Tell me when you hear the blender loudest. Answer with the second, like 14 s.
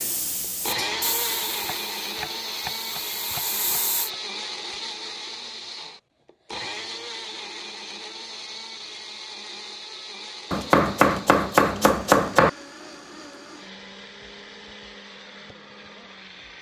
1 s.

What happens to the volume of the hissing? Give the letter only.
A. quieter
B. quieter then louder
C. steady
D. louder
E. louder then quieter
B.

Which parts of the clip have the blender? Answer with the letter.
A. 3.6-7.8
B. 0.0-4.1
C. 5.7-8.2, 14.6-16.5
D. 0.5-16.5
D.